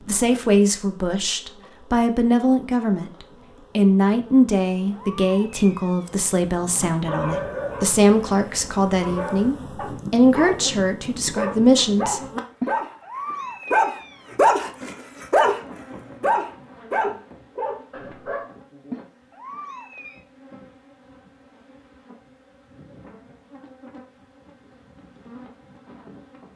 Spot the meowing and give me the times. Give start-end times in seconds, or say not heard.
4.5-6.1, 12.6-14.3, 18.9-20.2.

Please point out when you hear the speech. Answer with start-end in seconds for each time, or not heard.
0.1-3.1, 3.8-12.2.